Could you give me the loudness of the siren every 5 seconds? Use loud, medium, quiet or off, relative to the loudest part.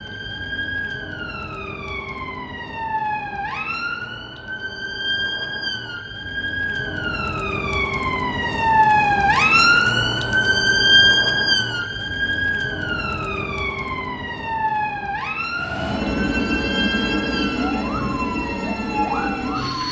medium, loud, loud, medium.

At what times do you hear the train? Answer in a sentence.
The train can be heard from 15.5 to 19.8 s.